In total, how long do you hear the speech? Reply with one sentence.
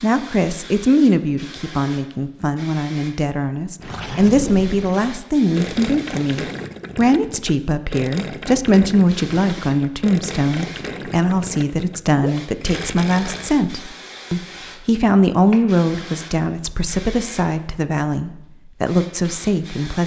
The speech can be heard for 20 seconds in total.